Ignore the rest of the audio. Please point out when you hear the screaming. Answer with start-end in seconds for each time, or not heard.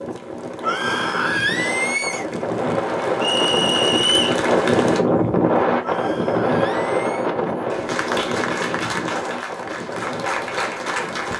0.6-2.2, 5.8-7.3.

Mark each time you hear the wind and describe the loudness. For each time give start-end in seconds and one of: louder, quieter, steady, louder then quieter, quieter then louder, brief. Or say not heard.
0.0-11.3 louder then quieter.